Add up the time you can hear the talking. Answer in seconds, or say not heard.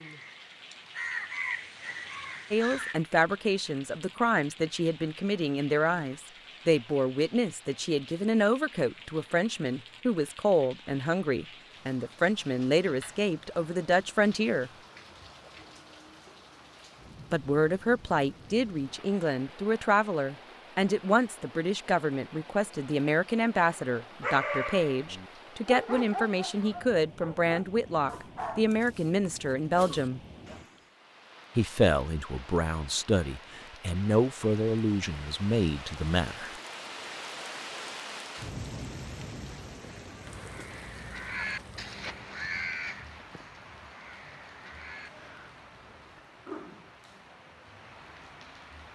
30 s.